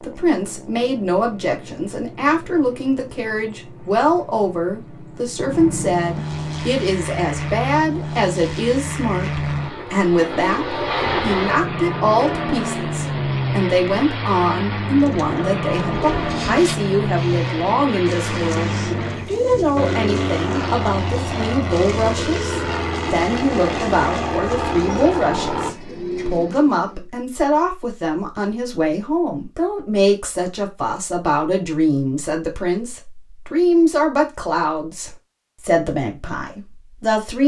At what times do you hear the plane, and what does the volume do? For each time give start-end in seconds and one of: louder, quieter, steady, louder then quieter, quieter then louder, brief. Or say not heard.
0.0-25.8 louder.